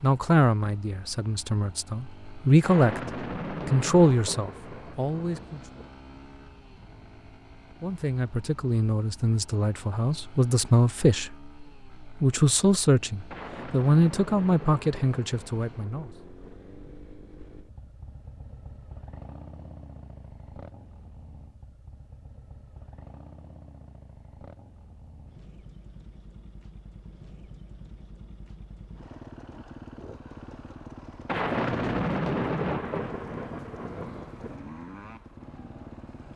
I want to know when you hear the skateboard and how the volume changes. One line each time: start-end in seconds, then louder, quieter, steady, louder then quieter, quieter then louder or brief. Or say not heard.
not heard.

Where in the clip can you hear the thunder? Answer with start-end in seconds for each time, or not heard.
2.6-5.9, 13.3-16.6, 31.2-34.5.